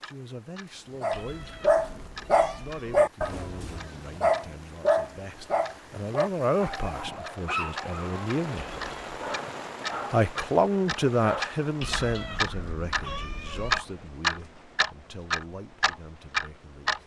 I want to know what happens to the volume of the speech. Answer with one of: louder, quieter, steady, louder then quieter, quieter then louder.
louder then quieter.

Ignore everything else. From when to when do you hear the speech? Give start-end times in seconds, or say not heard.
0.0-8.7, 10.1-17.0.